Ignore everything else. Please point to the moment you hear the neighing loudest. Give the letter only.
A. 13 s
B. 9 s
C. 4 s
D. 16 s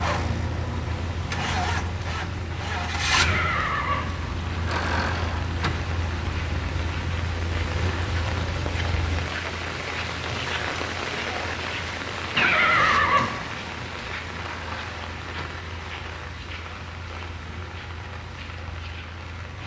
A.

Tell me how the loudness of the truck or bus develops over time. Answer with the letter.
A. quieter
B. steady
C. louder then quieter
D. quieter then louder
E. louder
A.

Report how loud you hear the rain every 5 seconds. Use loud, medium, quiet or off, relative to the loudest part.
medium, loud, loud, medium.